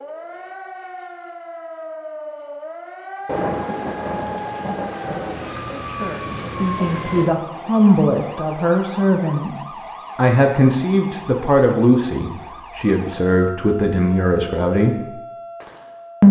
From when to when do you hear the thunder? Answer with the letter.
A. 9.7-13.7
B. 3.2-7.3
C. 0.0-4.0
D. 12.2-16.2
B.